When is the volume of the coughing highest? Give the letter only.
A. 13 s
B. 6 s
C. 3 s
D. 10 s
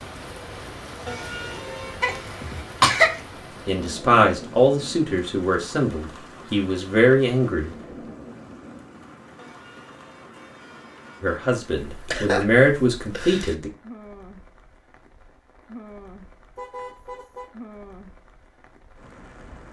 C.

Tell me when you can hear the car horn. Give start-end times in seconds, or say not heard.
1.1-2.3, 9.3-11.4, 16.6-17.6.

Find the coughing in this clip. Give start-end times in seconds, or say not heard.
2.0-3.2, 11.8-13.6.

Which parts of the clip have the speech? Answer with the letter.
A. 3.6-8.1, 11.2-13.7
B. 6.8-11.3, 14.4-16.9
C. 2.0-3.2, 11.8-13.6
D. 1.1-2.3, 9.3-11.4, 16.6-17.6
A.